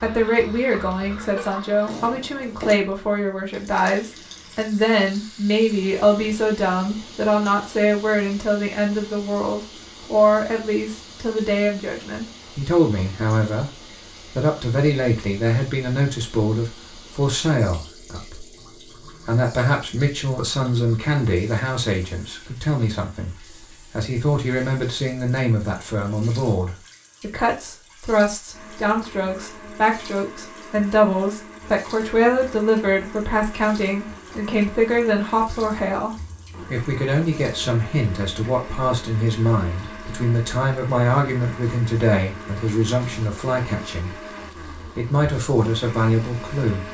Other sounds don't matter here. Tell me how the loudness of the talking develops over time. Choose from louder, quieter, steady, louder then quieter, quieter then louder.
steady.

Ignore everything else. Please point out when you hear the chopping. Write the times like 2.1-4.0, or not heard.
not heard.